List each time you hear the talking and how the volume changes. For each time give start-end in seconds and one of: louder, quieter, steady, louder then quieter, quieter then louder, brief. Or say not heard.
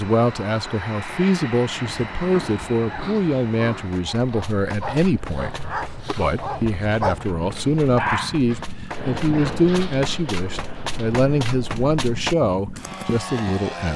0.0-13.9 steady.